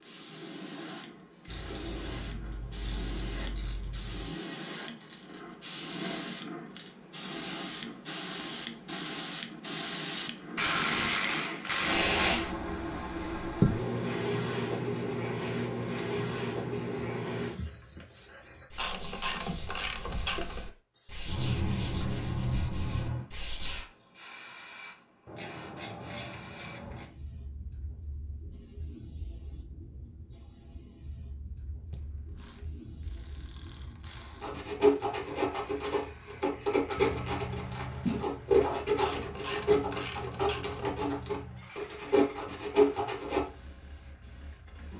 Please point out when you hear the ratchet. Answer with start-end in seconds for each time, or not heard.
1.4-4.3, 10.6-12.6, 18.8-20.6, 25.2-27.1, 31.9-34.5, 39.0-41.0.